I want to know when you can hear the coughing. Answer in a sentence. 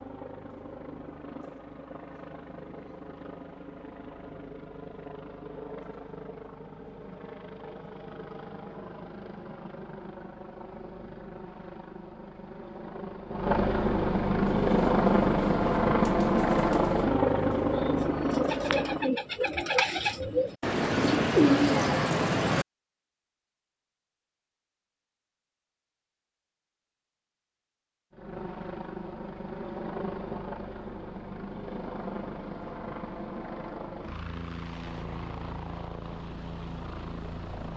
The coughing can't be heard in this clip.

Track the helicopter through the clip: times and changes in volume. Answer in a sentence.
You can hear the helicopter from 0.0 to 19.1 s, getting louder; and from 28.1 to 37.7 s, at a steady volume.